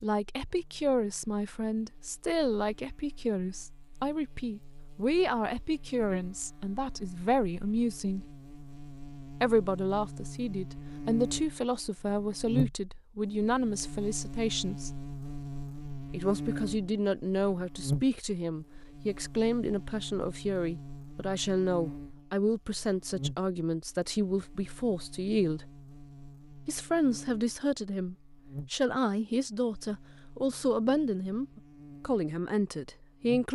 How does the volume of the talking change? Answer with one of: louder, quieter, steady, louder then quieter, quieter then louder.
steady.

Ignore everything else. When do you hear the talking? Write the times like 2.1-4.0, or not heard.
0.0-8.2, 9.4-14.9, 16.1-25.6, 26.6-33.5.